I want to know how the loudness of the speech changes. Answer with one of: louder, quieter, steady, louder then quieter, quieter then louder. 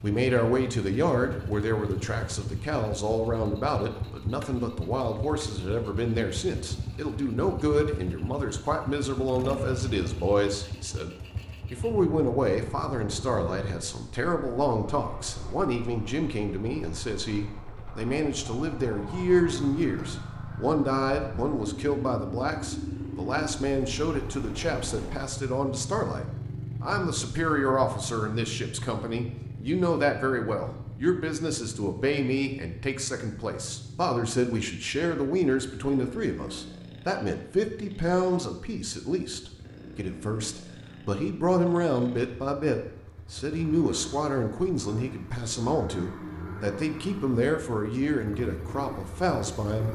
steady.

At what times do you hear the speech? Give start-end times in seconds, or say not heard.
0.0-49.9.